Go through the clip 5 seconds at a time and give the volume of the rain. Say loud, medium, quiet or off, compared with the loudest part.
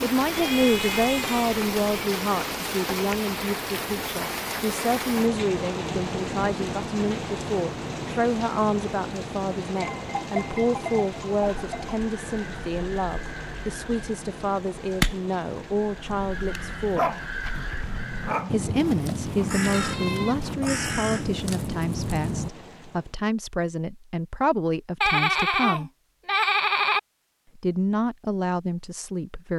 loud, loud, medium, quiet, quiet, off.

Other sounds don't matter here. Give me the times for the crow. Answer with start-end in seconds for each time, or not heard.
11.4-22.5.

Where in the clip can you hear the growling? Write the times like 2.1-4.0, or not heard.
16.1-18.7.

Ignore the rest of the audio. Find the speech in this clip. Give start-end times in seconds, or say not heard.
0.0-17.1, 18.5-25.9, 27.6-29.5.